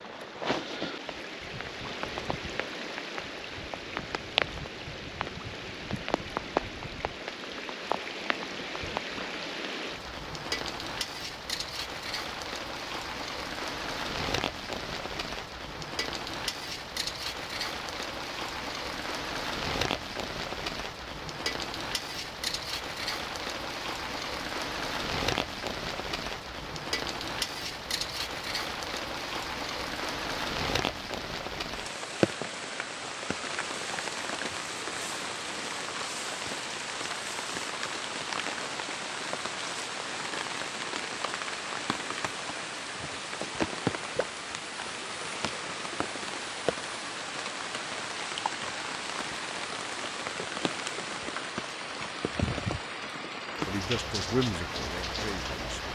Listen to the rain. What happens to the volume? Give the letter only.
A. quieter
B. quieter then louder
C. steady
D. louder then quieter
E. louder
C.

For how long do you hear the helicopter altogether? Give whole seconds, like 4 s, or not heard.
not heard.